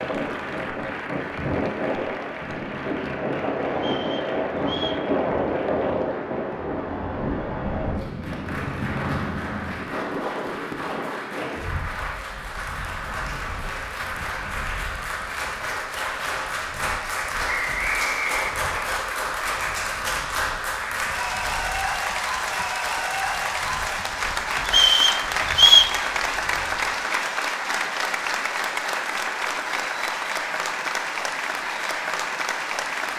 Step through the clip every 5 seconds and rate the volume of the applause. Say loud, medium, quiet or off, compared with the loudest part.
medium, medium, medium, loud, loud, loud, loud.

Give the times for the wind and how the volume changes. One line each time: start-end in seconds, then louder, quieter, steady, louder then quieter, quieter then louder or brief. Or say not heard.
0.0-27.0 quieter.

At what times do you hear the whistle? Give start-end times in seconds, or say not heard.
3.8-5.0, 17.4-19.0, 24.6-25.9.